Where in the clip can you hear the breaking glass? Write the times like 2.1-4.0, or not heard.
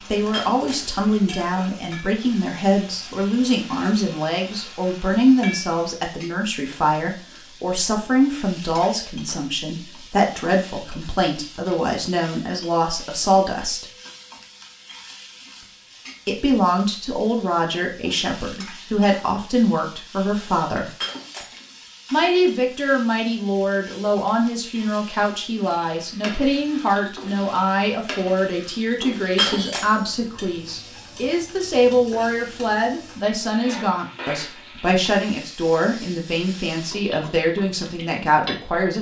0.3-0.9, 21.0-21.8, 29.4-30.1.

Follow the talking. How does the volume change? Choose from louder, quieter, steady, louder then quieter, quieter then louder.
steady.